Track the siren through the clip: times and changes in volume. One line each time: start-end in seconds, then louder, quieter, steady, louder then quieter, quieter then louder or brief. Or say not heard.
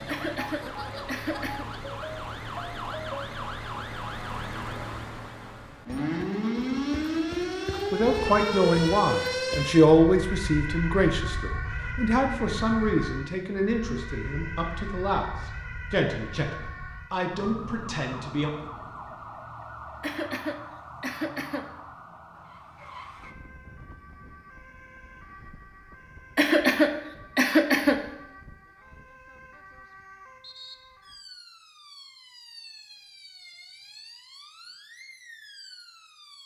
0.0-36.4 quieter.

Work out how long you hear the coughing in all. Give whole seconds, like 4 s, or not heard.
5 s.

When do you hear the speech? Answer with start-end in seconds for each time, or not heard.
7.9-18.5.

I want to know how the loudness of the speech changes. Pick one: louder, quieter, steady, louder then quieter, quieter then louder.
quieter.